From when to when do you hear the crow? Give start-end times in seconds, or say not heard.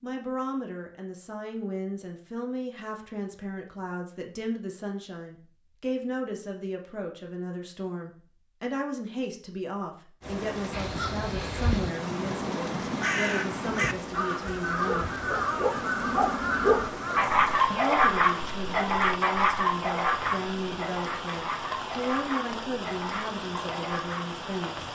10.7-17.2.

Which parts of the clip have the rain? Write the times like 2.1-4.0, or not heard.
10.2-24.9.